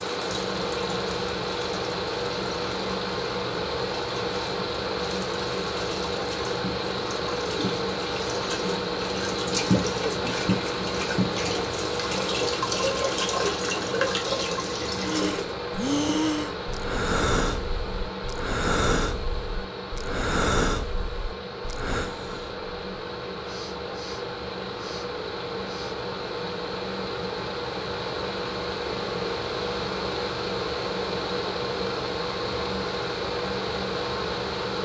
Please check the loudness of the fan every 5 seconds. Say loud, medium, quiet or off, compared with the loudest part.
loud, loud, loud, medium, medium, loud, loud.